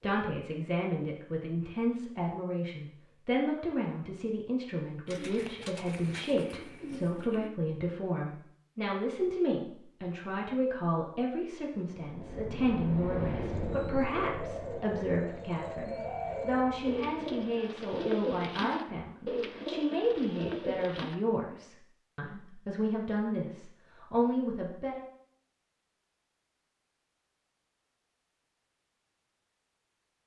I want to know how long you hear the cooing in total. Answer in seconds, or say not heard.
10 s.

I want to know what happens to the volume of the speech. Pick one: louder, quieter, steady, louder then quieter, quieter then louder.
steady.